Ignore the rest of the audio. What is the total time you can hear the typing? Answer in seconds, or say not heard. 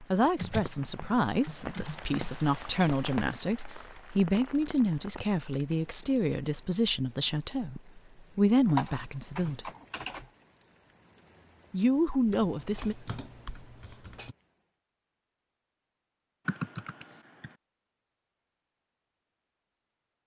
9 s.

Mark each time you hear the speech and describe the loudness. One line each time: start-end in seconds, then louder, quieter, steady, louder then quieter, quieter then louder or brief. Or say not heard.
0.0-9.7 steady
11.7-12.9 brief.